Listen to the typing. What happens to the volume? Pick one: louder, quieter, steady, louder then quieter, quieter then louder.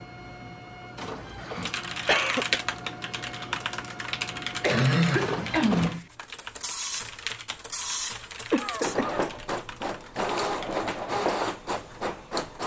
quieter.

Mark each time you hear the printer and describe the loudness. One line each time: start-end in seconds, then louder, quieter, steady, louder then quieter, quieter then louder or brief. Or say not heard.
0.0-12.6 louder.